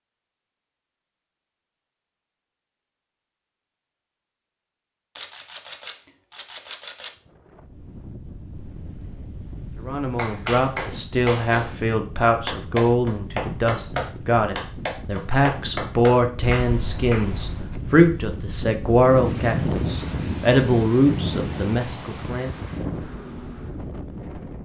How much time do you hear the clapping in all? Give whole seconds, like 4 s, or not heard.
7 s.